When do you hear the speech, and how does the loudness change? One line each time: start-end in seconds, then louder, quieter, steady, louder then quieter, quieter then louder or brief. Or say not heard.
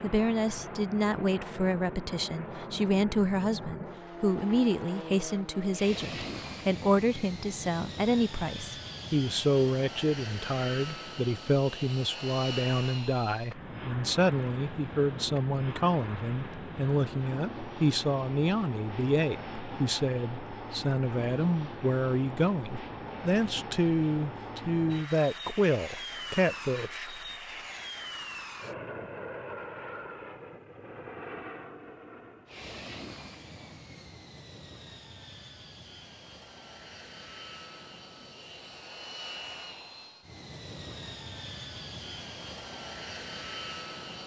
0.0-27.2 steady.